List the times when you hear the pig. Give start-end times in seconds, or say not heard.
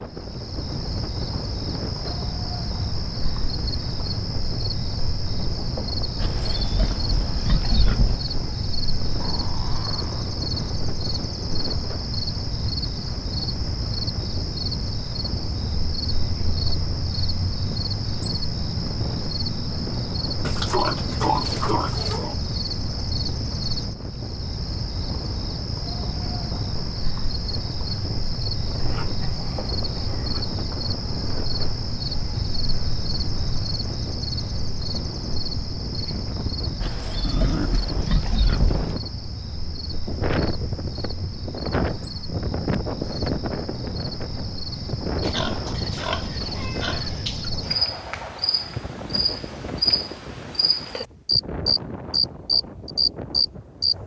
6.2-8.2, 20.4-22.4, 36.8-39.0, 45.2-47.5.